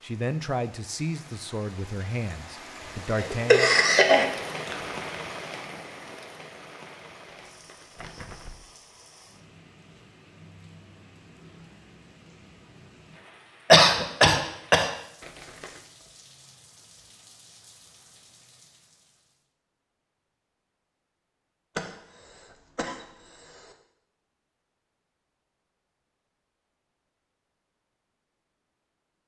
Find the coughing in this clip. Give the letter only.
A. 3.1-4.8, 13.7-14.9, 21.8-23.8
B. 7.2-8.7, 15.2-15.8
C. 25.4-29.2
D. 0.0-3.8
A.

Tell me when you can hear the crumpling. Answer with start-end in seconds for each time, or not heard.
7.2-8.7, 15.2-15.8.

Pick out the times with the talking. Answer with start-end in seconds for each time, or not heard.
0.0-3.8.